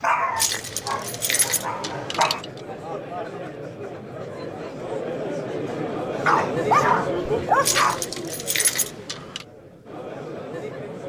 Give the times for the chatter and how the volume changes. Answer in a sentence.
The chatter can be heard from 0.0 to 11.0 s, getting louder then quieter.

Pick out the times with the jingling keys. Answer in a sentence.
You can hear the jingling keys from 0.3 to 2.6 s and from 7.6 to 9.4 s.